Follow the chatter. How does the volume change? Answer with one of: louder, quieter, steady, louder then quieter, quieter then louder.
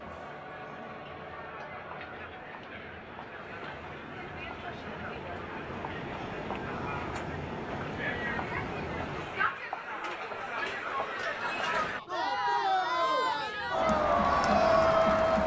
louder.